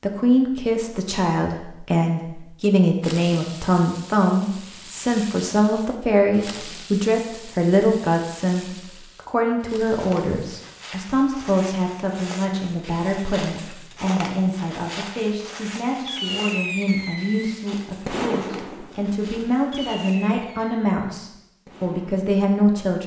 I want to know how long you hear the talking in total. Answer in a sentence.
You can hear the talking for 23 seconds altogether.